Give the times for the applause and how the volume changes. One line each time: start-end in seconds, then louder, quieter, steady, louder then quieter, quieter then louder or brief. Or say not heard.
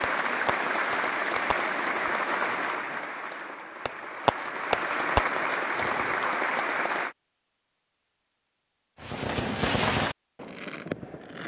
0.0-7.2 quieter then louder.